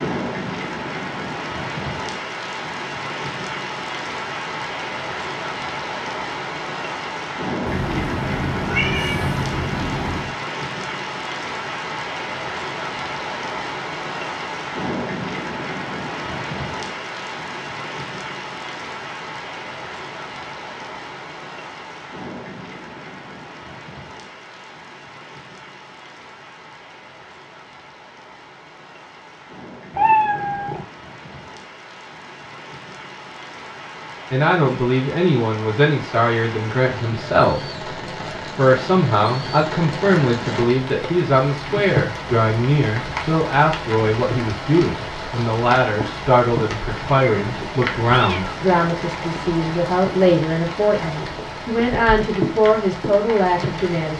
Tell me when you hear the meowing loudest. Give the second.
30 s.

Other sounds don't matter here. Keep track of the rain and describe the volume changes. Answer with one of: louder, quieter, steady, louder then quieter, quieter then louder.
quieter then louder.